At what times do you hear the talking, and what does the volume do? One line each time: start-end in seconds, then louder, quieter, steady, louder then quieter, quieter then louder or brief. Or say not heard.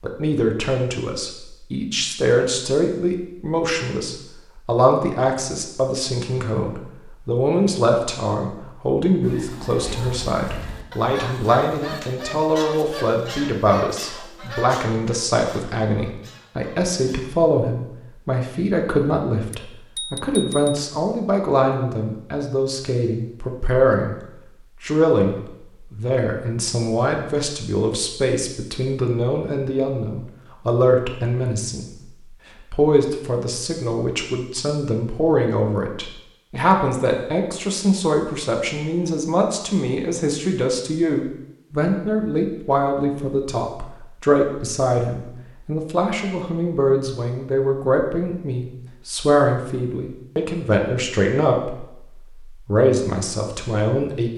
0.0-24.1 steady
24.8-54.3 steady.